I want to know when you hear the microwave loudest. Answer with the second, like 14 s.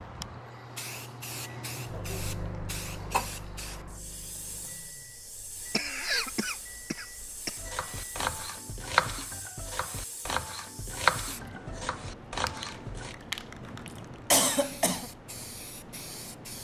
2 s.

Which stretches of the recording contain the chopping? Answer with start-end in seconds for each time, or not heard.
7.5-13.2.